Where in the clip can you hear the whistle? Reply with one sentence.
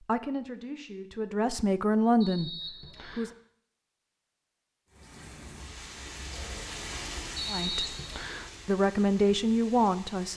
You can hear the whistle from 2.2 to 3.4 s and from 7.3 to 8.5 s.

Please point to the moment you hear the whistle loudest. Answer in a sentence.
The volume of the whistle peaks at 8 seconds.